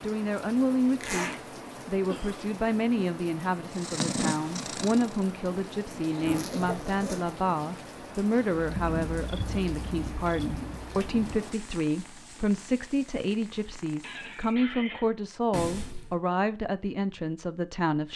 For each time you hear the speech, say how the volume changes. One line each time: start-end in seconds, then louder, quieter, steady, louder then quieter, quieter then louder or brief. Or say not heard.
0.0-18.1 steady.